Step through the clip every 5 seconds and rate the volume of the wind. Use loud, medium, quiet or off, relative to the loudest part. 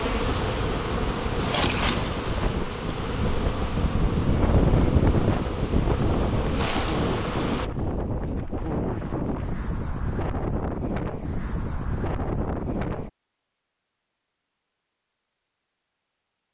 loud, loud, loud, off.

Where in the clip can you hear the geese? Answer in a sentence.
You can't hear the geese here.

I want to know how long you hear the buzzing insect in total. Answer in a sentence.
You can hear the buzzing insect for 8 seconds altogether.